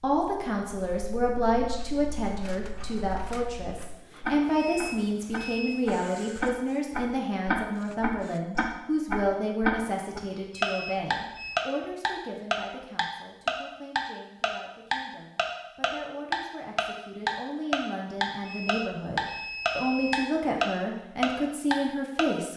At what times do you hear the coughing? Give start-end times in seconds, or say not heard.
not heard.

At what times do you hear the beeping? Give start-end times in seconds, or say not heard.
4.5-5.8, 10.5-11.6, 18.4-20.3.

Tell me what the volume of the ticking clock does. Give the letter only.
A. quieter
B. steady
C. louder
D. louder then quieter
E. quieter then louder
C.